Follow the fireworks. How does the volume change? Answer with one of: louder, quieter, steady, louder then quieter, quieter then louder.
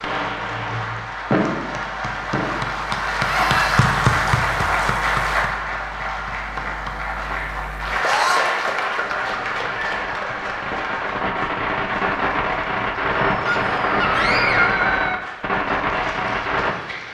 quieter then louder.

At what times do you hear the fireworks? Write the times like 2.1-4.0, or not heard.
0.0-3.6, 6.5-16.8.